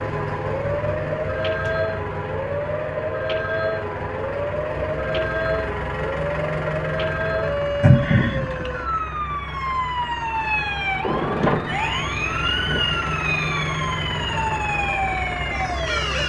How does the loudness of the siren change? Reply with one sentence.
The volume of the siren stays about the same.